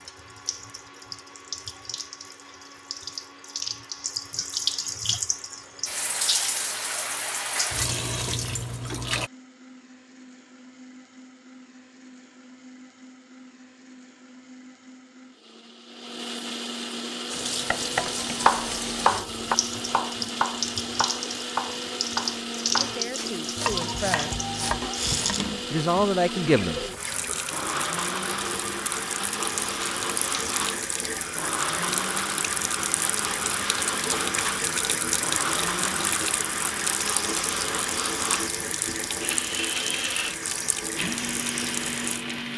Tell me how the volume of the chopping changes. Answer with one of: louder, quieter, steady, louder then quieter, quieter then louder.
quieter then louder.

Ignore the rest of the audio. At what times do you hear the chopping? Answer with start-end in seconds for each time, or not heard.
17.7-25.4.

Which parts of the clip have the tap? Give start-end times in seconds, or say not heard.
0.0-9.3, 17.3-42.5.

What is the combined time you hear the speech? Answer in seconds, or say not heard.
3 s.